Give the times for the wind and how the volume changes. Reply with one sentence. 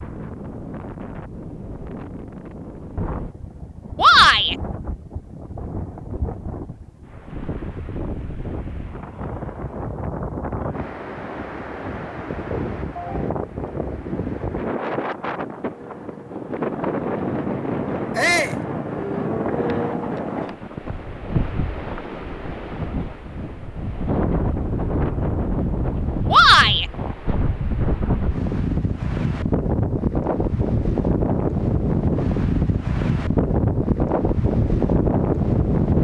You can hear the wind from 0.0 to 35.9 s, getting louder.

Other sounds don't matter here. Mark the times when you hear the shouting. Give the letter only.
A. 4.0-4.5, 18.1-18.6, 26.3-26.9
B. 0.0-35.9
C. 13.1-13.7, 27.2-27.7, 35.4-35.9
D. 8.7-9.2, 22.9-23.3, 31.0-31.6
A.